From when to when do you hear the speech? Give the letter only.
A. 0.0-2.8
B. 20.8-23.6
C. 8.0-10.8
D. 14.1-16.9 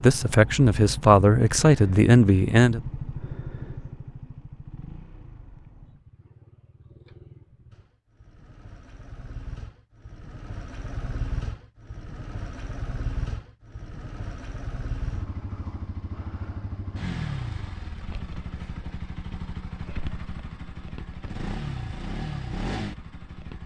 A.